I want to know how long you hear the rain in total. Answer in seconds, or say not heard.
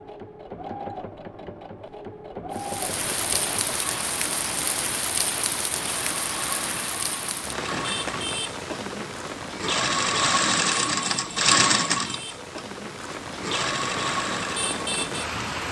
13 s.